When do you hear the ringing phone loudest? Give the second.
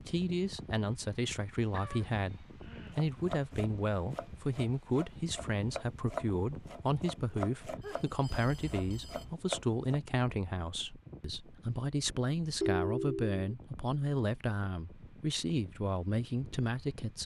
13 s.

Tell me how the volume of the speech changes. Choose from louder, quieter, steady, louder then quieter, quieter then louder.
steady.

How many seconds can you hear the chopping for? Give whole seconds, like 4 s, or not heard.
7 s.